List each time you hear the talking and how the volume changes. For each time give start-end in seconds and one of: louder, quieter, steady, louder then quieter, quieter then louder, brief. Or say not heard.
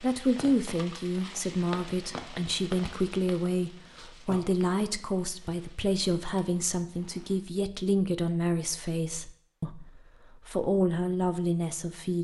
0.0-12.2 steady.